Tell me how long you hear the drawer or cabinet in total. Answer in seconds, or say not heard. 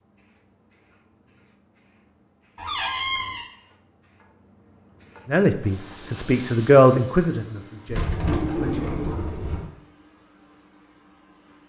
3 s.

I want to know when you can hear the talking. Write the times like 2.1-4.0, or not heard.
5.2-8.9.